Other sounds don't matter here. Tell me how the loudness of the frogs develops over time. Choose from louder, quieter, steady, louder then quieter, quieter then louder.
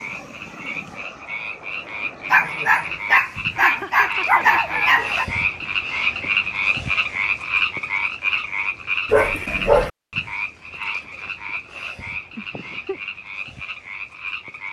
louder then quieter.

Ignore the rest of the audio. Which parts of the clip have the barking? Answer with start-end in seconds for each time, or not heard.
2.3-5.2, 9.1-9.9.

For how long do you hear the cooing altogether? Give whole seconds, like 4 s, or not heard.
not heard.